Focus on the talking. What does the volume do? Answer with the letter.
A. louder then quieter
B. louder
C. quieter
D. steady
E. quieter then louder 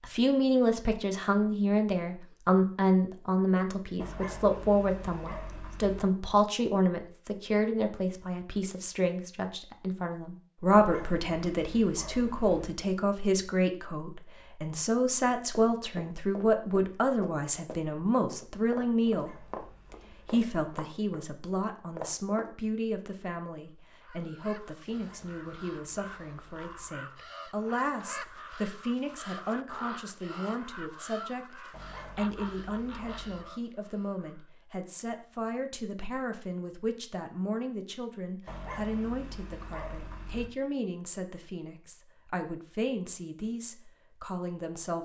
C.